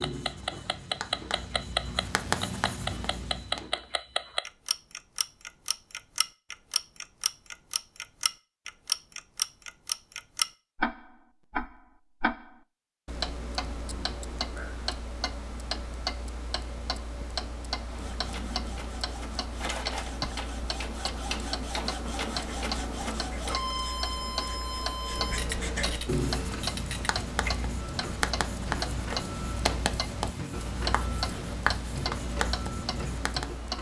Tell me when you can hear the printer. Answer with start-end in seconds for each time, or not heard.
17.9-33.7.